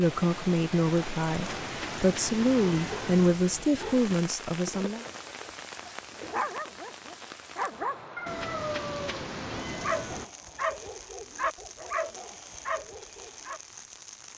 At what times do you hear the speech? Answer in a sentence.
The speech can be heard from 0.0 to 5.0 s.